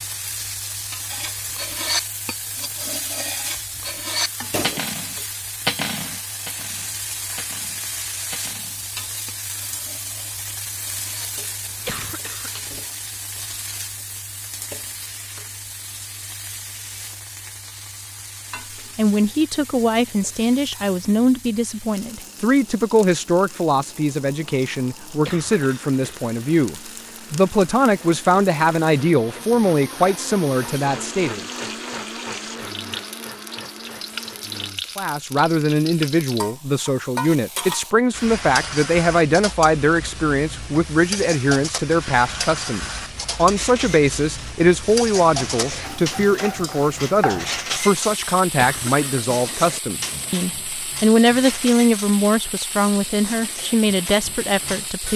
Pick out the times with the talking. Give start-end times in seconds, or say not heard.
18.9-31.4, 35.0-55.1.